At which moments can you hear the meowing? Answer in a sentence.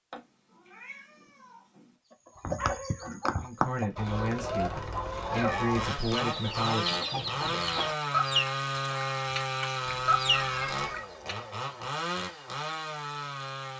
You can hear the meowing from 0.1 to 1.9 s, from 5.2 to 5.8 s and from 9.8 to 11.0 s.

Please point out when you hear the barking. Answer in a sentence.
The barking can't be heard in this clip.